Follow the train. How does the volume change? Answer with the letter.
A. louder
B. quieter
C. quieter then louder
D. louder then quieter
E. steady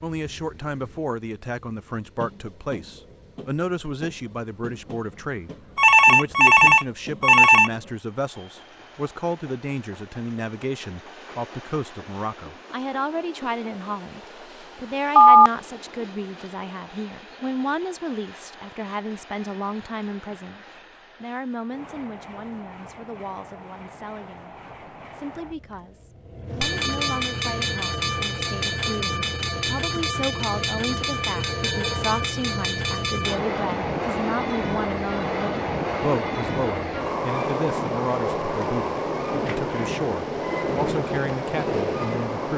A.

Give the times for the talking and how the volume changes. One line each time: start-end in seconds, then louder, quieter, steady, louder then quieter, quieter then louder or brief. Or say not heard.
0.0-42.5 steady.